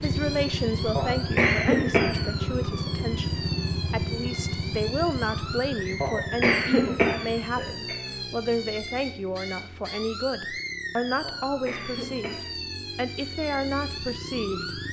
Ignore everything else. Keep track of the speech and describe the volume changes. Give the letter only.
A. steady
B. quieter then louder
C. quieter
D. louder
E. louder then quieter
A.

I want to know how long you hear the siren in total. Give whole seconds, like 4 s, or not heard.
15 s.